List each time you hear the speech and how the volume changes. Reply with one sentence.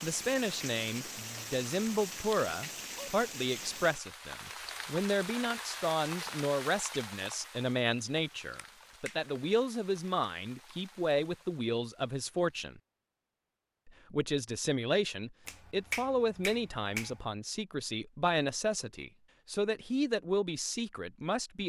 You can hear the speech from 0.0 to 12.8 s, at a steady volume; and from 13.8 to 21.6 s, at a steady volume.